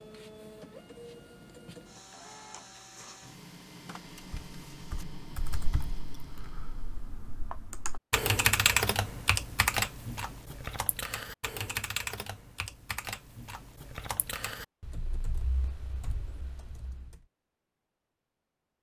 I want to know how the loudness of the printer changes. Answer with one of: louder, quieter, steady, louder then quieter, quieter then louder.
steady.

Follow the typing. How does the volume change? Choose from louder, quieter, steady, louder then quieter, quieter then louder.
louder then quieter.